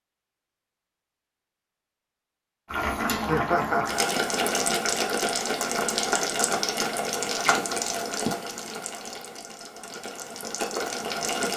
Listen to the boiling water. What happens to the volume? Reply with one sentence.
The loudness of the boiling water goes down.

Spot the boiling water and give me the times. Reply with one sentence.
You can hear the boiling water from 2.6 to 11.5 s.